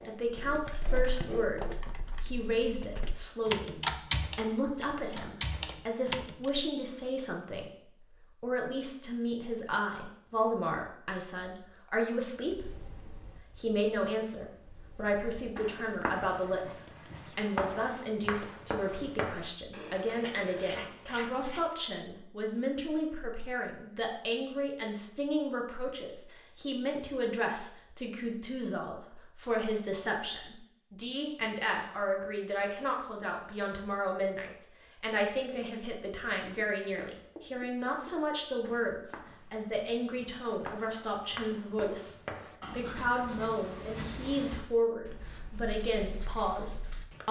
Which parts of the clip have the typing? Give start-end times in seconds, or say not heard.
0.3-6.5.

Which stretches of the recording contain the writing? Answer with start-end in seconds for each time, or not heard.
0.0-2.0, 12.5-21.6, 36.5-47.2.